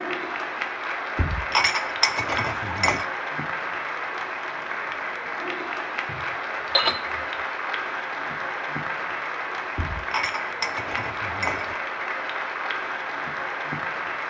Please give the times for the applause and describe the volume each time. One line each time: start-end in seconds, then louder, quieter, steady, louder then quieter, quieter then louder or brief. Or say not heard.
0.0-14.2 steady.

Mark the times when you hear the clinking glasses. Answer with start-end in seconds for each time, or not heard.
1.1-3.1, 6.0-7.2, 9.8-11.8.